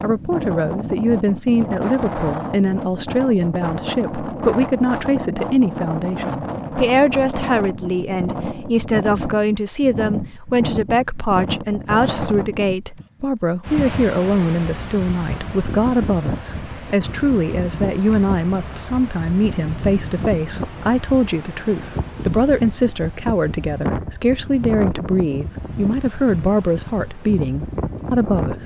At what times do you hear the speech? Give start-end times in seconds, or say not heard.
0.0-28.6.